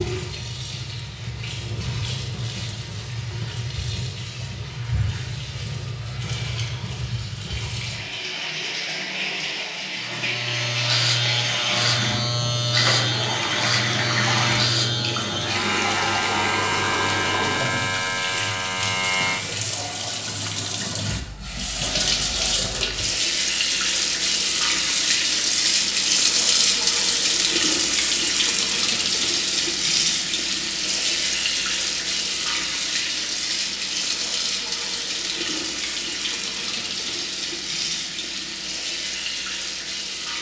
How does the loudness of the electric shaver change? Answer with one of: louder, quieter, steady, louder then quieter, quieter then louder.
steady.